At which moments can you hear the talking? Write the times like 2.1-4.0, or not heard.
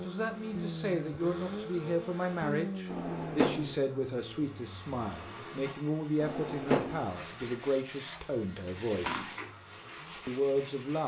0.0-9.3, 10.2-11.0.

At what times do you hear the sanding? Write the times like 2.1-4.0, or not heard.
7.0-11.0.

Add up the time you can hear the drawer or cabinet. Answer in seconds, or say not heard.
2 s.